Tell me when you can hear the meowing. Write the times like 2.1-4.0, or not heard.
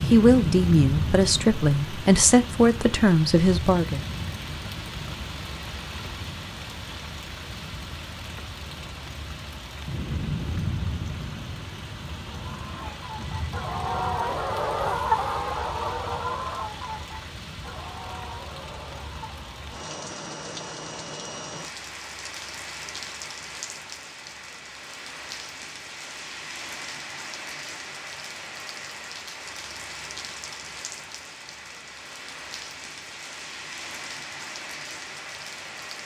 not heard.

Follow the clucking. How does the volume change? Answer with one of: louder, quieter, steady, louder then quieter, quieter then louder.
louder then quieter.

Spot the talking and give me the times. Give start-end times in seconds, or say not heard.
0.1-4.0.